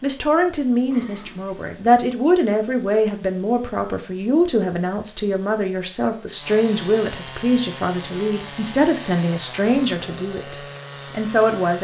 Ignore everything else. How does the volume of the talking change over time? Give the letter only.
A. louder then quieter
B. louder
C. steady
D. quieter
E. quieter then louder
C.